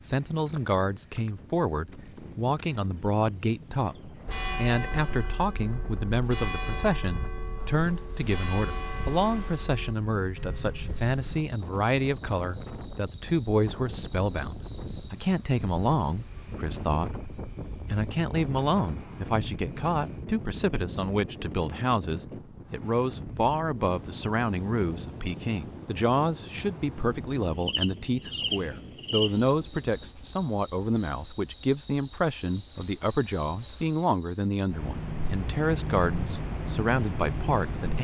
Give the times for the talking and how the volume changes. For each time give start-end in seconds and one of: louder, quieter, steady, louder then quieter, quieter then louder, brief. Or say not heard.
0.1-38.0 steady.